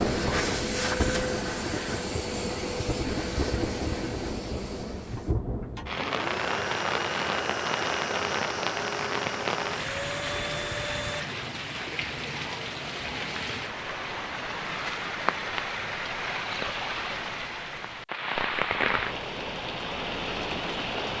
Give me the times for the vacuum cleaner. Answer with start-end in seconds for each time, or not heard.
0.0-11.2.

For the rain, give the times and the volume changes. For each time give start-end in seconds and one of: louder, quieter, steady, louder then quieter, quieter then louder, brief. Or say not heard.
0.0-21.1 steady.